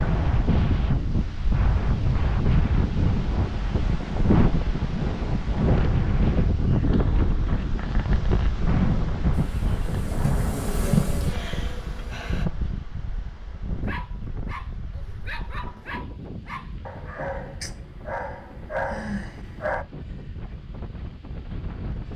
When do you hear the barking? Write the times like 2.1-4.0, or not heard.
13.8-19.9.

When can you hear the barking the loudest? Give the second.
19 s.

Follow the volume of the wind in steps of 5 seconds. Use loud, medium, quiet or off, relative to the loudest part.
loud, loud, medium, quiet, quiet.